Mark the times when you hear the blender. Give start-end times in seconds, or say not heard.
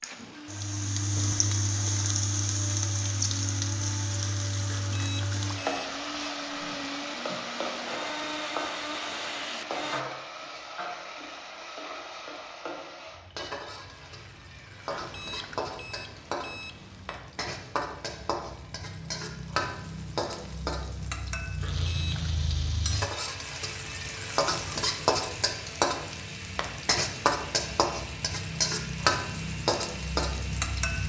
0.0-10.1, 21.6-31.0.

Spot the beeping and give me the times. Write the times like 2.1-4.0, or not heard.
4.7-6.2, 14.9-17.2, 21.6-22.3.